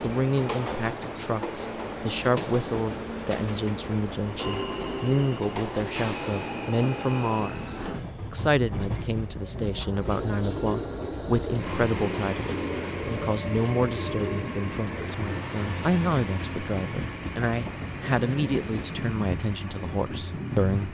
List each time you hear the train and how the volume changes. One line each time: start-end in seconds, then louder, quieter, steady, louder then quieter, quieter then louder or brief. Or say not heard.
0.0-20.8 steady.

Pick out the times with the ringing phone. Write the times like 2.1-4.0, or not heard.
not heard.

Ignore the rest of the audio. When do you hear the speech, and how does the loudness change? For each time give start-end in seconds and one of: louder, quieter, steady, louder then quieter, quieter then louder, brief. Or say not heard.
0.0-20.8 steady.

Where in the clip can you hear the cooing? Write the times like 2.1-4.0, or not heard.
10.0-15.4.